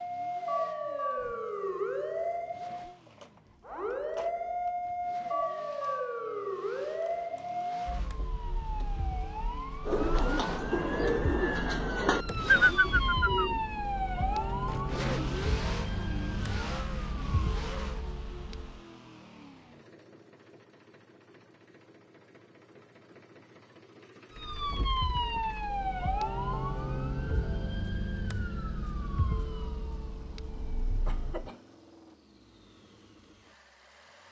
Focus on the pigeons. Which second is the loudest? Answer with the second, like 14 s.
13 s.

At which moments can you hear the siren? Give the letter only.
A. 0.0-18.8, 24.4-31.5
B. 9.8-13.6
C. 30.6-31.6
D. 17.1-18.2
A.